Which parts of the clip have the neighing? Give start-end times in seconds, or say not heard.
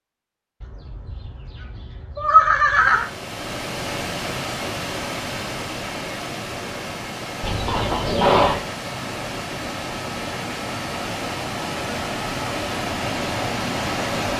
0.6-3.0, 7.4-8.7.